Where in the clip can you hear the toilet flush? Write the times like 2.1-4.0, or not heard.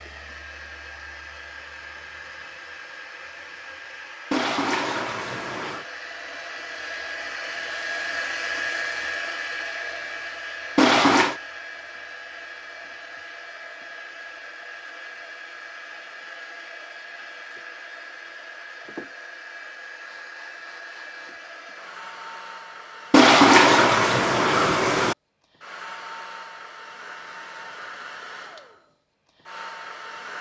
4.3-5.8, 10.8-11.3, 23.1-25.1.